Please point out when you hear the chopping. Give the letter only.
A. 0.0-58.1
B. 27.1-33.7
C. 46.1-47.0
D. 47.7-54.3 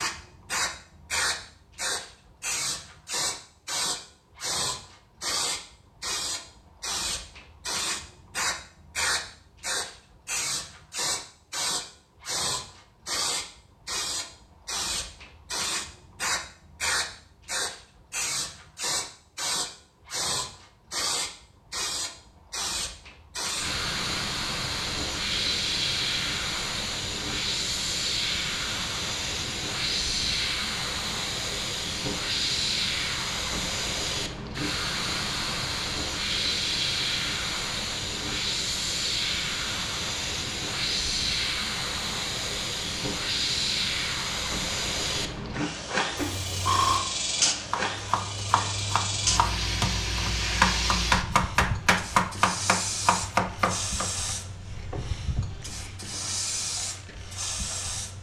D.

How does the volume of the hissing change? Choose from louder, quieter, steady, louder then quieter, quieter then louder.
steady.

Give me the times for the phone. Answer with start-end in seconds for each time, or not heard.
46.1-47.0.